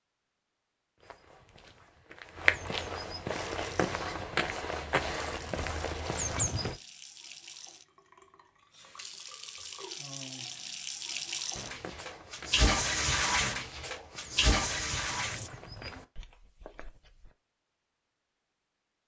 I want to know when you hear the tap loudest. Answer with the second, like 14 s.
13 s.